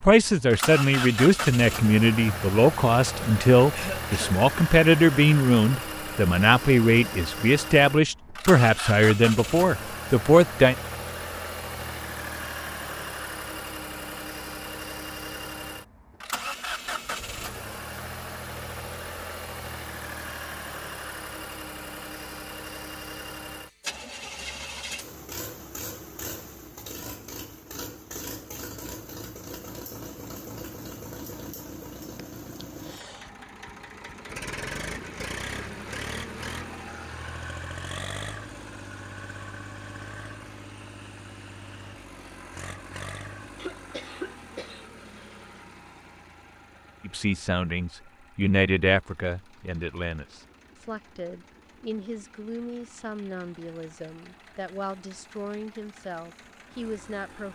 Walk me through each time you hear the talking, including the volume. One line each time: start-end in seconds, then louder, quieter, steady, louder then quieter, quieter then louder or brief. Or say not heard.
0.0-10.8 steady
47.0-57.4 quieter.